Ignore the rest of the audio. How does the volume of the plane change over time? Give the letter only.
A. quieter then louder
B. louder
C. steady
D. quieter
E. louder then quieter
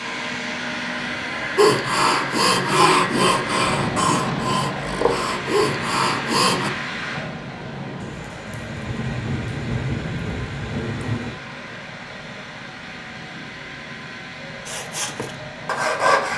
D.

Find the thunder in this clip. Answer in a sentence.
You can hear the thunder from 8.0 to 11.4 s.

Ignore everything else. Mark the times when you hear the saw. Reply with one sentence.
The saw can be heard from 1.6 to 6.7 s and from 14.7 to 16.3 s.